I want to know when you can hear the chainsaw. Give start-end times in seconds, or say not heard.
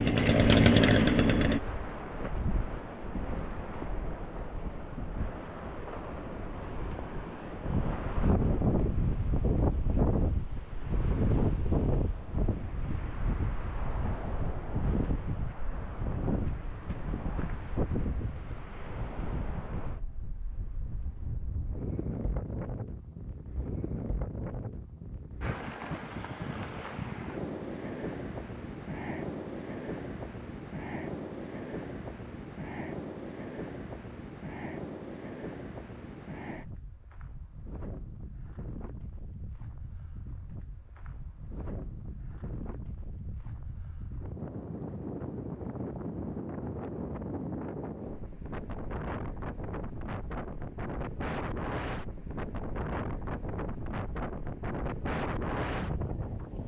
0.0-1.6.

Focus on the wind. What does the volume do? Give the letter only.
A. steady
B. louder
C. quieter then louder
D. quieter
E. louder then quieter
C.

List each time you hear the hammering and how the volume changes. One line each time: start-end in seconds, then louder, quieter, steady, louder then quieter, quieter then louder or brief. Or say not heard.
not heard.